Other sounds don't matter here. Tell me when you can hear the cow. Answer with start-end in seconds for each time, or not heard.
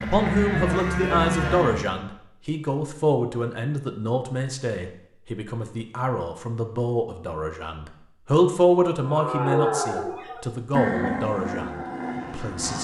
0.0-2.0, 9.0-12.7.